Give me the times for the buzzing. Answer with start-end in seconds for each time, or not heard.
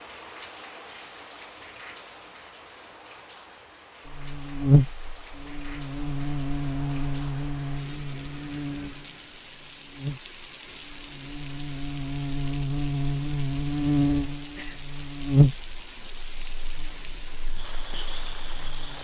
4.0-18.9.